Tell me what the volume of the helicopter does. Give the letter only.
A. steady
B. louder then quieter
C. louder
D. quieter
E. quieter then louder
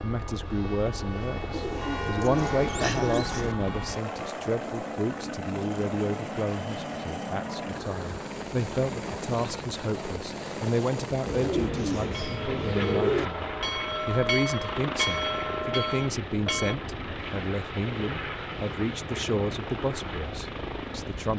A.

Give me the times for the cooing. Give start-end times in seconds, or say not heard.
1.5-3.5, 11.2-13.3.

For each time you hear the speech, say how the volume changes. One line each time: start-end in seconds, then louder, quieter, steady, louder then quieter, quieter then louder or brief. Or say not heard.
0.0-21.3 steady.